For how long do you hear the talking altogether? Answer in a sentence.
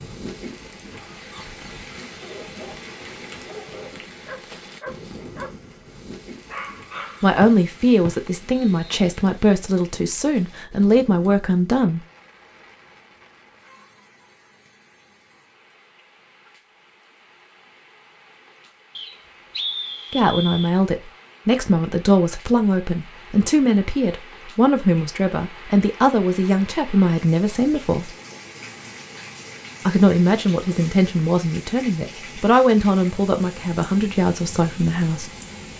You can hear the talking for 18 seconds altogether.